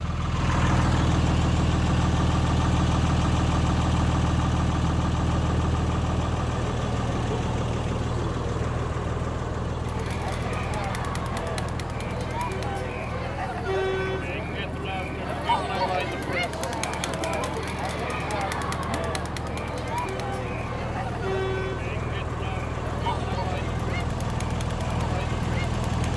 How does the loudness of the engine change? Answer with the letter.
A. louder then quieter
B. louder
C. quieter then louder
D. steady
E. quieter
C.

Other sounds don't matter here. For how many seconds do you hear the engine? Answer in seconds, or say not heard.
26 s.